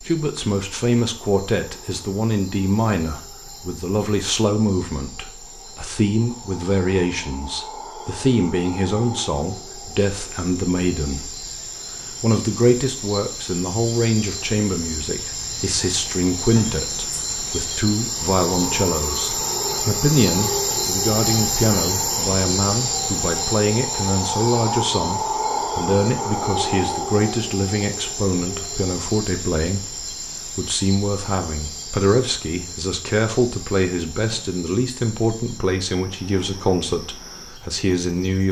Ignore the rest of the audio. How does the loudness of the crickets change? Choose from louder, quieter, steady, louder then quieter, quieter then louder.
louder then quieter.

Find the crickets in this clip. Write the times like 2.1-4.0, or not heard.
0.0-38.4.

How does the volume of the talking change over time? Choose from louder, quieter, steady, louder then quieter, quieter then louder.
steady.